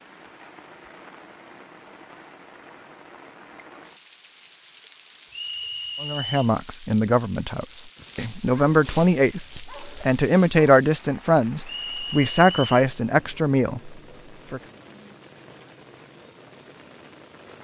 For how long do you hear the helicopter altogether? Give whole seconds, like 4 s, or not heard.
not heard.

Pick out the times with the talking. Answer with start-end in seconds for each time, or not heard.
6.0-14.6.